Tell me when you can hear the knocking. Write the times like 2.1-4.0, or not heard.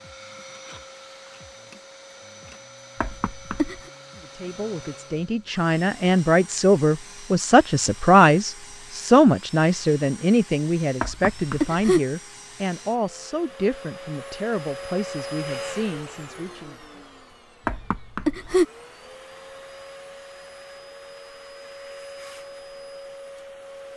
3.0-3.8, 11.0-12.0, 17.6-18.6.